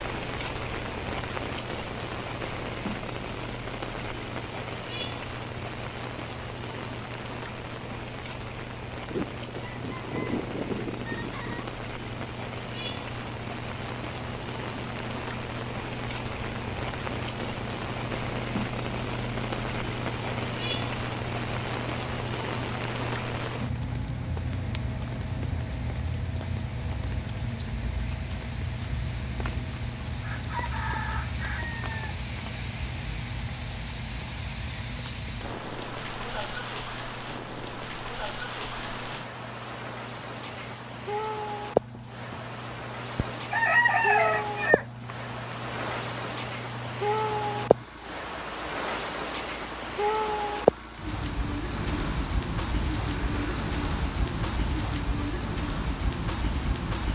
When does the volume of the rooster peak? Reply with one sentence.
The loudest moment of the rooster is at 44 seconds.